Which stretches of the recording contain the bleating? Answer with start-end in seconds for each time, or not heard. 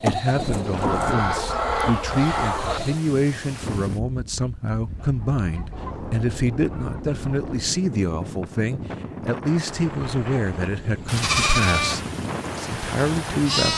0.0-3.0, 11.1-13.7.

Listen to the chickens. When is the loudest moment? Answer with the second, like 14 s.
2 s.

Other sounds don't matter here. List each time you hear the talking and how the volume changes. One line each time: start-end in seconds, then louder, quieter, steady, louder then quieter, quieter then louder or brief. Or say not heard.
0.0-13.7 steady.